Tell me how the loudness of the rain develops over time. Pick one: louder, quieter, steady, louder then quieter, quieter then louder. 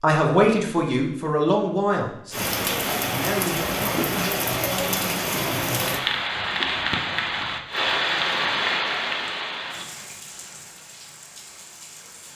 quieter.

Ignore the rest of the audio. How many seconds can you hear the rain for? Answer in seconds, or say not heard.
10 s.